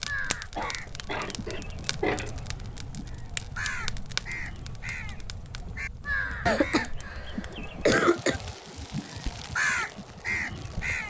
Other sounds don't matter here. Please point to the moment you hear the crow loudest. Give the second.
10 s.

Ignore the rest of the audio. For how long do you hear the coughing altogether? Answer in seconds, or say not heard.
4 s.